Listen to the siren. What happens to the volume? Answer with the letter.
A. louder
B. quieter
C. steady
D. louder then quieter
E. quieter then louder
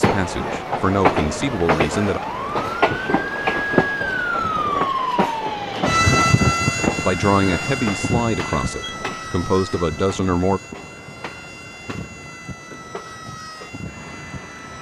D.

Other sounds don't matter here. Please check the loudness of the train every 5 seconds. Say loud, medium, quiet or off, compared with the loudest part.
loud, medium, quiet.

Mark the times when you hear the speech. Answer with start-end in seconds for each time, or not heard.
0.0-2.2, 7.0-10.6.